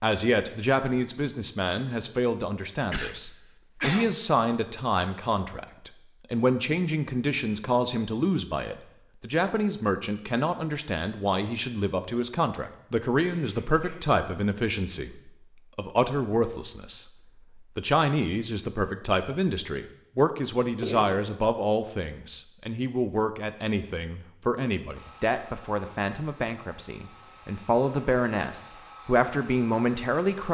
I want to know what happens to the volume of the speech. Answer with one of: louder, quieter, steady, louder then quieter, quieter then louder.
steady.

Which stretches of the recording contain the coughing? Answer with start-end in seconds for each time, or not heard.
2.9-4.2, 13.3-14.1, 20.8-21.2.